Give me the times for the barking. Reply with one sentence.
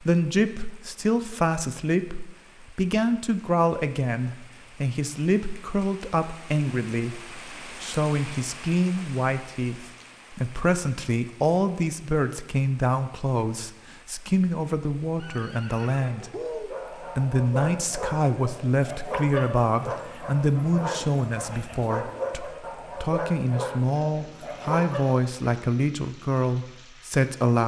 You can hear the barking from 16.4 to 25.1 s.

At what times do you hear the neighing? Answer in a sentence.
You can hear the neighing from 15.2 to 16.8 s.